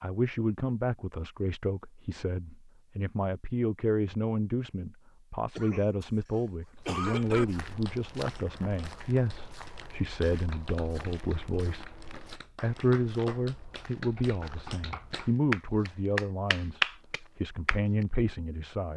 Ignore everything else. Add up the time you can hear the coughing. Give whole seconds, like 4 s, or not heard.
2 s.